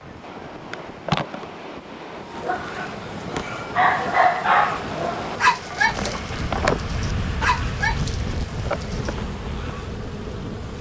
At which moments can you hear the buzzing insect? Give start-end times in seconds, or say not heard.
0.0-10.7.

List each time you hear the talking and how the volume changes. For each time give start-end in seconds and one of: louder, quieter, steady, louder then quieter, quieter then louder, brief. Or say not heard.
not heard.